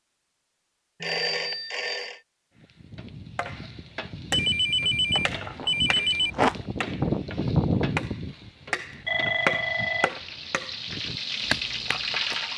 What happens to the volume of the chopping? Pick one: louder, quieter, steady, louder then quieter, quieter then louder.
louder then quieter.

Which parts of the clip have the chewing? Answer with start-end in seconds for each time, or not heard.
5.1-6.6.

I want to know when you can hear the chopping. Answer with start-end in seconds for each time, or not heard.
2.6-12.4.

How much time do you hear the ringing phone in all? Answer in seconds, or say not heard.
4 s.